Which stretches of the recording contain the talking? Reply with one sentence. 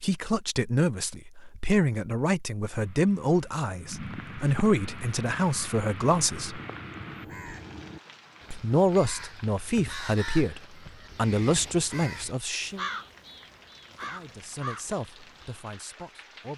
The talking can be heard from 0.0 to 6.6 s, from 8.5 to 12.8 s and from 13.9 to 16.5 s.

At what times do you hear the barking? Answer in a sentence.
The barking can't be heard in this clip.